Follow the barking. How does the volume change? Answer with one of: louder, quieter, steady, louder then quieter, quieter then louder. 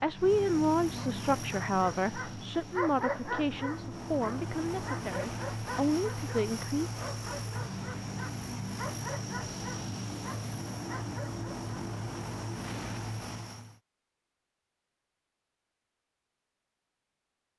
quieter.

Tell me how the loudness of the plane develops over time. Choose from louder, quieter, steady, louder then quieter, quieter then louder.
steady.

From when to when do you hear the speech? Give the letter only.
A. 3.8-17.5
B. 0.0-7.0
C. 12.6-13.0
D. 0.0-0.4
B.